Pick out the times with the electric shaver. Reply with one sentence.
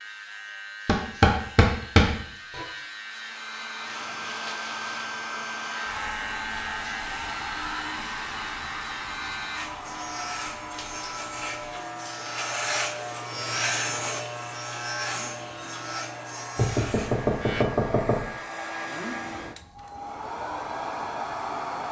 You can hear the electric shaver from 0.0 to 17.6 s.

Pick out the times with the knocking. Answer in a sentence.
The knocking can be heard from 0.8 to 2.6 s and from 16.6 to 18.2 s.